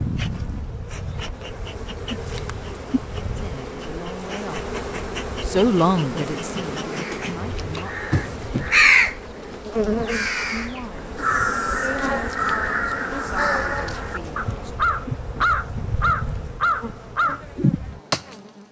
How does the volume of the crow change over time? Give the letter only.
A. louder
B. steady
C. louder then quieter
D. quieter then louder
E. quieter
D.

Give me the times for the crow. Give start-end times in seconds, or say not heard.
6.9-17.4.